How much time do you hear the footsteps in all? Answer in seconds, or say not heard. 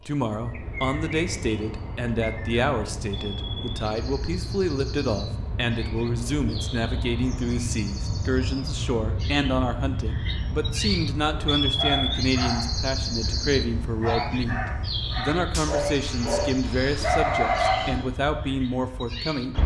not heard.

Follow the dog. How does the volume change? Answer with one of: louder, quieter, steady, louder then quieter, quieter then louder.
louder.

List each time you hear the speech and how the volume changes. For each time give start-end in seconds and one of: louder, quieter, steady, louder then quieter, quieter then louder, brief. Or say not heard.
0.1-19.6 steady.